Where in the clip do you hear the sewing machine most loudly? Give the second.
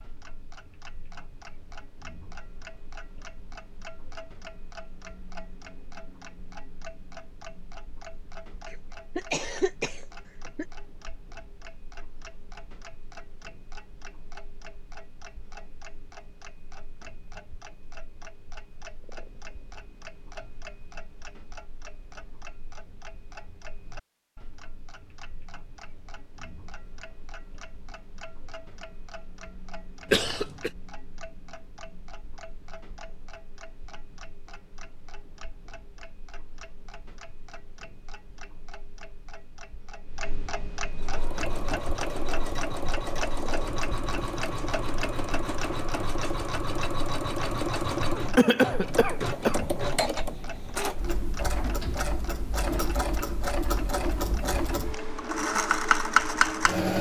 56 s.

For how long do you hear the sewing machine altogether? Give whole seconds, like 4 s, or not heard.
16 s.